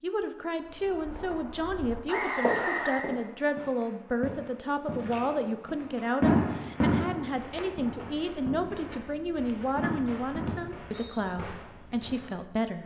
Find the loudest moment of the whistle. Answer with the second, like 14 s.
3 s.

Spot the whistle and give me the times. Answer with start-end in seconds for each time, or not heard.
2.0-3.0, 9.8-11.2.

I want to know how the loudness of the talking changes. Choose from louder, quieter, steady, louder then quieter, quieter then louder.
steady.